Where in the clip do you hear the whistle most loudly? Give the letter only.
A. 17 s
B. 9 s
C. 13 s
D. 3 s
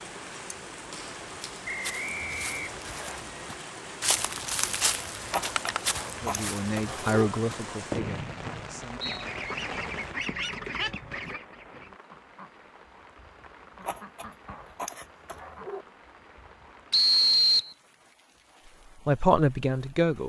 A.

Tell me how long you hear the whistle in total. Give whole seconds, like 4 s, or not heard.
4 s.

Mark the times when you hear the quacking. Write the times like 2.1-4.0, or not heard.
9.0-16.9.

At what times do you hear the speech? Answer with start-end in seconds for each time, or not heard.
6.2-9.0, 18.6-20.2.